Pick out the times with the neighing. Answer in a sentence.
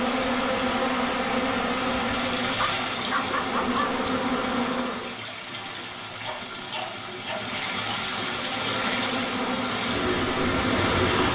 The neighing can't be heard in this clip.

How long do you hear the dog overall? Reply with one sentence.
You can hear the dog for 3 seconds altogether.